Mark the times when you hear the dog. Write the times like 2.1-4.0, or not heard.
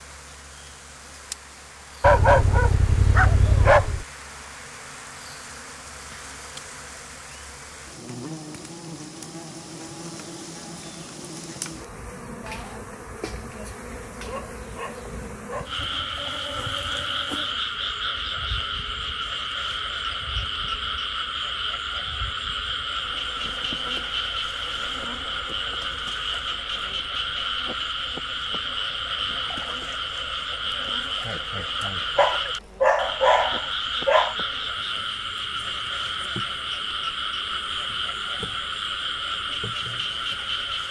2.0-4.0, 14.2-15.7, 32.1-34.4.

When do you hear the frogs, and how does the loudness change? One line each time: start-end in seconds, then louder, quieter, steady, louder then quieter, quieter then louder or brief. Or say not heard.
15.7-40.8 steady.